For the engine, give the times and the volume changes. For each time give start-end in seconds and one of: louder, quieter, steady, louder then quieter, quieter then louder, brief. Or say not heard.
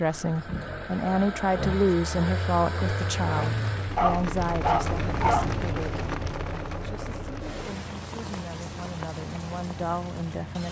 0.0-10.6 quieter.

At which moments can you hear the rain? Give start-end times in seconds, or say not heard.
2.9-10.6.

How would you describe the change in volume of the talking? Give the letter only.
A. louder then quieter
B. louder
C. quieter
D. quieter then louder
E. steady
D.